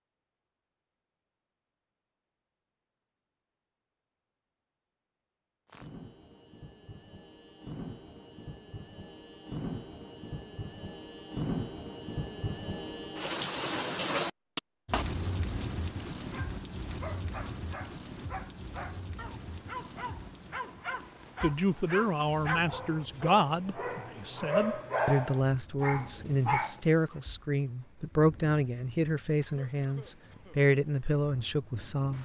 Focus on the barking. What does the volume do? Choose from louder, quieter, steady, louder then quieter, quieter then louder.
louder.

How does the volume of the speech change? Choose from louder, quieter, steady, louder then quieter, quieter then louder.
steady.